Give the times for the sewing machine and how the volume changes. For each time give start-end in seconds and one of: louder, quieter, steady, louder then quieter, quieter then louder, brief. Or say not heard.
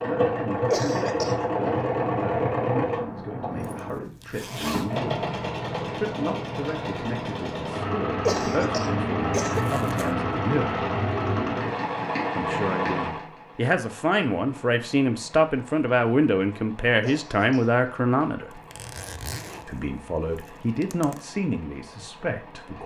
0.0-22.8 quieter.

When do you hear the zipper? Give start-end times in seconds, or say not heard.
3.6-5.0, 9.5-10.2, 18.5-21.2.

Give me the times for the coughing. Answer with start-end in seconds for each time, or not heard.
0.7-1.4, 8.2-9.7, 17.0-17.7.